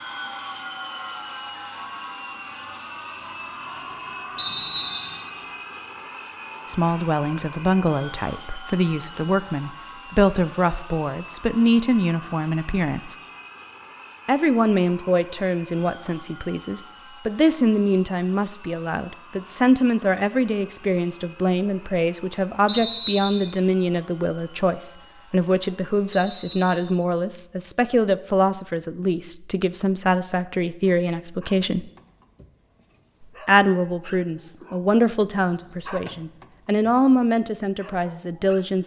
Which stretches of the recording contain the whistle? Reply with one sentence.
The whistle can be heard from 4.3 to 5.2 s, from 22.6 to 23.6 s and from 26.1 to 27.0 s.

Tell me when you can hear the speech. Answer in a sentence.
You can hear the speech from 6.7 to 13.2 s, from 14.2 to 31.9 s and from 33.5 to 38.8 s.